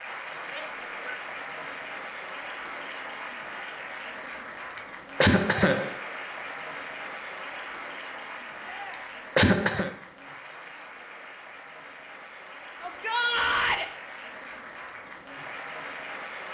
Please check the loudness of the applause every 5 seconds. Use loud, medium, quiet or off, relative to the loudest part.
loud, loud, medium, loud.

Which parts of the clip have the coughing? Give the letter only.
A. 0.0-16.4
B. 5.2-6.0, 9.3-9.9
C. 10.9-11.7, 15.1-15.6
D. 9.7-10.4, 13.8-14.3
B.